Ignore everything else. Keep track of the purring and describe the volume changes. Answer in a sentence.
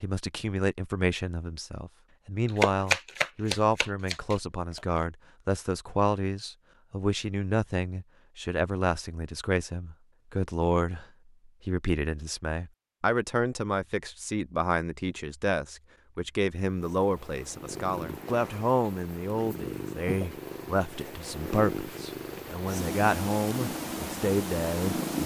The loudness of the purring goes up.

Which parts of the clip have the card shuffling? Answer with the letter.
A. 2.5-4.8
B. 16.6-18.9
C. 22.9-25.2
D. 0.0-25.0
A.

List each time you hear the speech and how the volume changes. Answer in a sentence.
The speech can be heard from 0.0 to 25.0 s, at a steady volume.